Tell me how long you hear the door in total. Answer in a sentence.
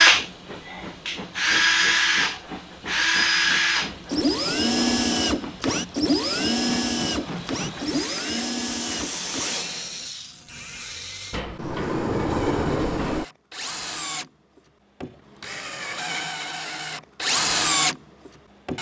The door can be heard for 3 seconds in total.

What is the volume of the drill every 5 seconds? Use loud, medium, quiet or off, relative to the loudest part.
loud, medium, quiet, medium.